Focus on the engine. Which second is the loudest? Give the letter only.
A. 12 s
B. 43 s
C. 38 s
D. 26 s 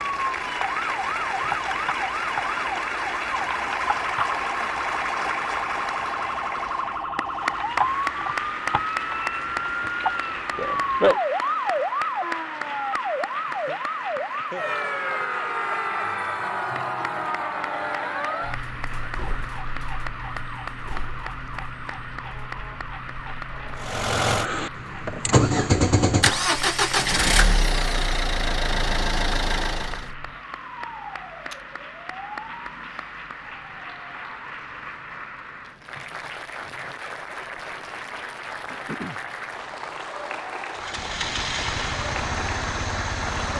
D.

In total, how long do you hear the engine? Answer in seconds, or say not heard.
9 s.